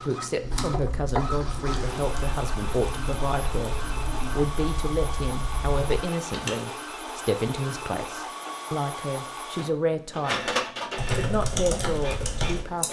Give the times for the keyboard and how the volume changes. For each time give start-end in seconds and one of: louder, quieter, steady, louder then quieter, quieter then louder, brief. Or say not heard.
0.4-6.5 steady
10.9-12.8 brief.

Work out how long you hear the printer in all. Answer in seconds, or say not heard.
13 s.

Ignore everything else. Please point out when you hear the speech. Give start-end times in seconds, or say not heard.
0.0-3.8, 4.3-10.6, 11.2-12.8.